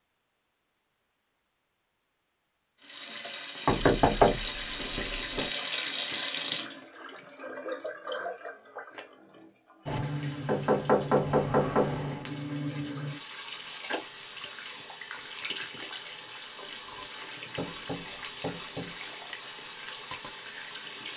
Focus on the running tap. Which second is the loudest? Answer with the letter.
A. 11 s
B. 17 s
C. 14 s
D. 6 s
D.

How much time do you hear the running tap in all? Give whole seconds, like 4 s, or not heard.
18 s.